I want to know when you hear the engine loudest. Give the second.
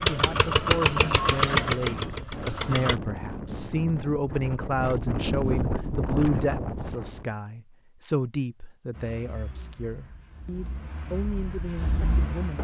1 s.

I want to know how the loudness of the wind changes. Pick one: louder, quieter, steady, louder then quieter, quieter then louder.
louder.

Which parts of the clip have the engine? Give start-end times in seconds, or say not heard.
0.0-3.0, 8.9-12.5.